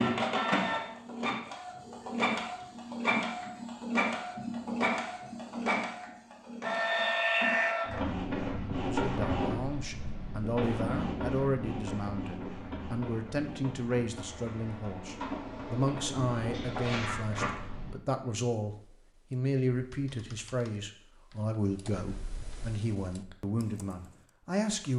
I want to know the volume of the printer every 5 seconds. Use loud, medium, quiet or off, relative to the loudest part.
loud, loud, medium, medium, off.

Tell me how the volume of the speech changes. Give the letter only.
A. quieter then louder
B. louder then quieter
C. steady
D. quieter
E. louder
C.